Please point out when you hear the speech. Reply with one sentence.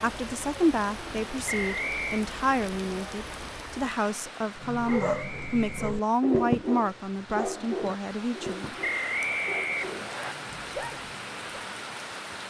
The speech can be heard from 0.0 to 8.8 s.